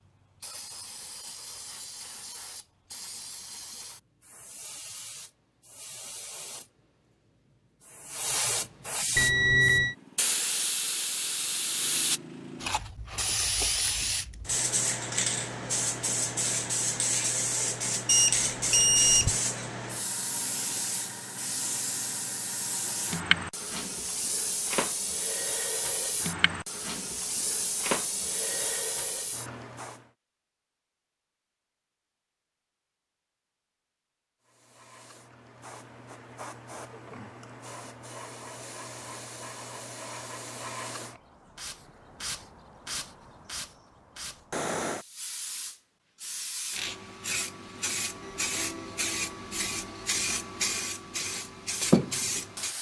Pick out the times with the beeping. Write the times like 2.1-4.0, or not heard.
9.2-9.9, 18.1-19.4, 48.2-50.0.